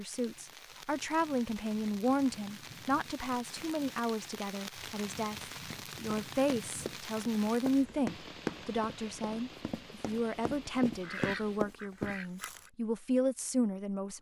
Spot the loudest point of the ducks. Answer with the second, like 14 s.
11 s.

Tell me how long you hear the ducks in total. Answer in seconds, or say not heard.
2 s.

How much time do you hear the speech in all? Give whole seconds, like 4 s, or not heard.
14 s.